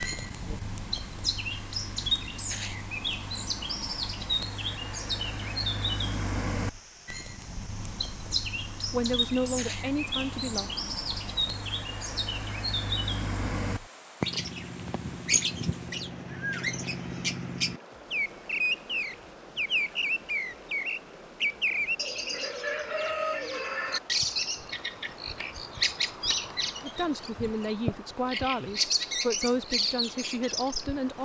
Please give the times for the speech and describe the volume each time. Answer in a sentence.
The speech can be heard briefly from 8.8 to 10.7 s; and from 26.8 to 31.2 s, at a steady volume.